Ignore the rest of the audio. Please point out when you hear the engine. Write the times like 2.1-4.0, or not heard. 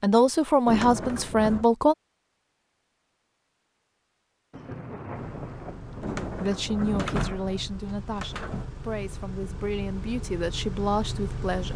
5.1-11.7.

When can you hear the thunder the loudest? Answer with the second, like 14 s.
7 s.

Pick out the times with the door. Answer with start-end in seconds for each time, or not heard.
0.7-1.6, 6.0-8.7.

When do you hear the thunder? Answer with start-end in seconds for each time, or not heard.
4.5-7.3.